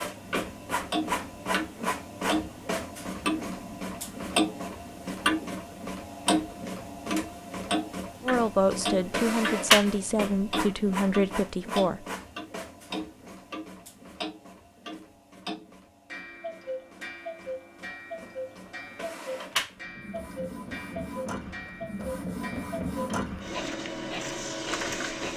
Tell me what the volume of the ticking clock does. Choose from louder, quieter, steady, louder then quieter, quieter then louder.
quieter.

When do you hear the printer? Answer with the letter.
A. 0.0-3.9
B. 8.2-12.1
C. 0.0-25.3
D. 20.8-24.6
C.